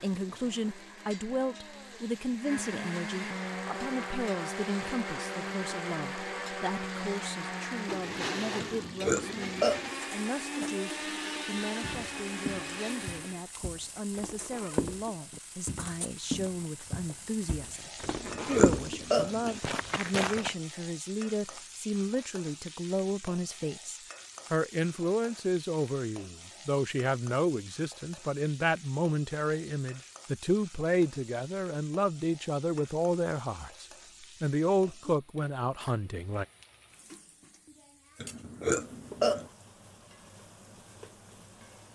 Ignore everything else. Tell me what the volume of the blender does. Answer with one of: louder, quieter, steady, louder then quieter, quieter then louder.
louder.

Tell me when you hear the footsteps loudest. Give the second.
19 s.